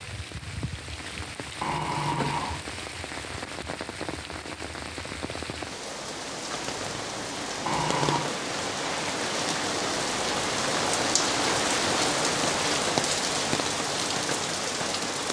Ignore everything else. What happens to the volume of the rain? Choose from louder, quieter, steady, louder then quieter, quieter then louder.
louder.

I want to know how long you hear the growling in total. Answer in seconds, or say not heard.
2 s.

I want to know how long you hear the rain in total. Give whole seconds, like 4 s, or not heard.
15 s.